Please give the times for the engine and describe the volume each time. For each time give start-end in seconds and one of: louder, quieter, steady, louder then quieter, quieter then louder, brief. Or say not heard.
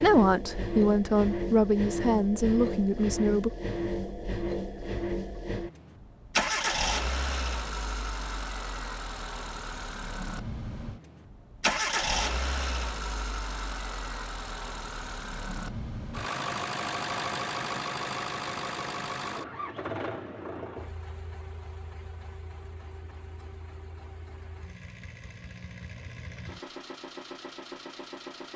0.0-28.5 quieter.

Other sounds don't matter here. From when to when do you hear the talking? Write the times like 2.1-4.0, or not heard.
0.0-3.5.